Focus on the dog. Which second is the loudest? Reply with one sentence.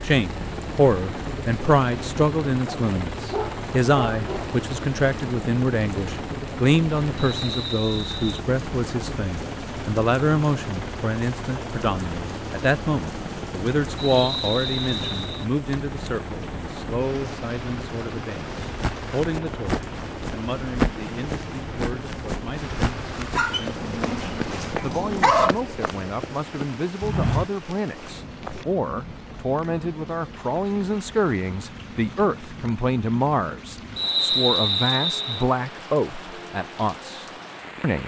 The loudest moment of the dog is at 25 seconds.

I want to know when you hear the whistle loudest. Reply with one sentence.
The volume of the whistle peaks at 34 seconds.